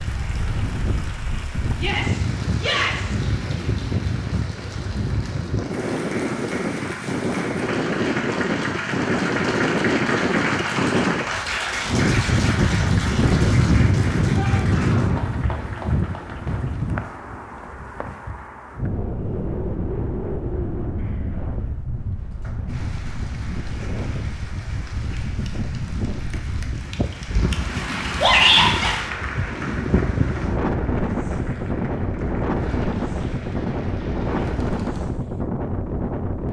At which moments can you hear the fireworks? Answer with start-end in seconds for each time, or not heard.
not heard.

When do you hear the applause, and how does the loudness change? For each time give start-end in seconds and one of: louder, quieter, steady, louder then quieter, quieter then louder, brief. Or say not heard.
0.0-16.9 louder then quieter
22.1-35.1 louder then quieter.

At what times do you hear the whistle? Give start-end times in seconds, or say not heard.
not heard.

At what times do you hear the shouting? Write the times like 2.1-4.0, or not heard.
1.8-3.1, 14.3-15.2, 28.2-28.9.